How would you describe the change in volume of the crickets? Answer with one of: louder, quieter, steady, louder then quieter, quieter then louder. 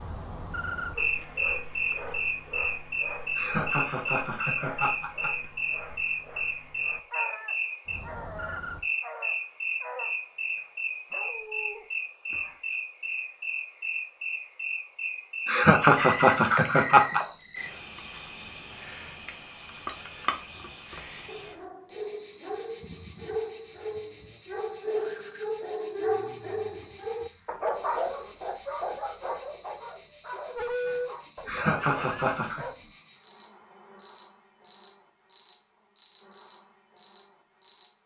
quieter.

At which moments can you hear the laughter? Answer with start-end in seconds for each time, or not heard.
3.4-5.3, 15.4-17.2, 31.4-32.6.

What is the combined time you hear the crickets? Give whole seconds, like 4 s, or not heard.
38 s.